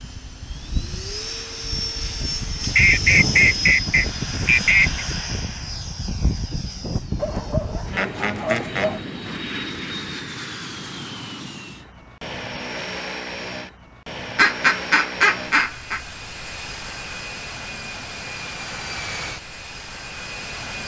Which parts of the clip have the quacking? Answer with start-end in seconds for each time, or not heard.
2.6-5.0, 7.2-9.0, 14.3-16.0.